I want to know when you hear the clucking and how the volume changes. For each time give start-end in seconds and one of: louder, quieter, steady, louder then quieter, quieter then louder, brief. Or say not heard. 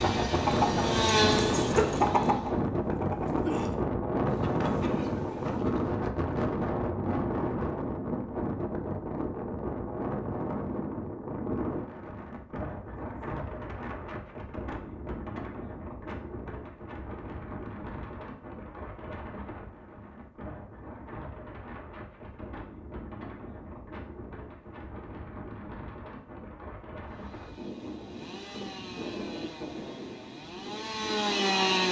0.0-6.0 quieter.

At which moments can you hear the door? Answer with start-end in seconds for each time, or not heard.
not heard.